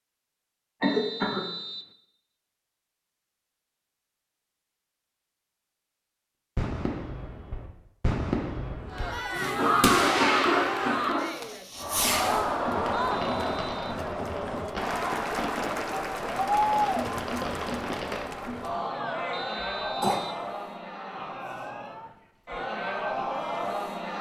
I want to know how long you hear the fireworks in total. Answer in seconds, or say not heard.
12 s.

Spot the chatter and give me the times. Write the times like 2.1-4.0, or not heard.
8.9-24.1.